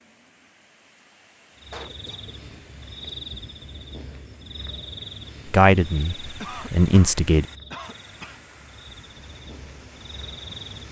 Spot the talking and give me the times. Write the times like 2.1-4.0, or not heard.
5.5-7.5.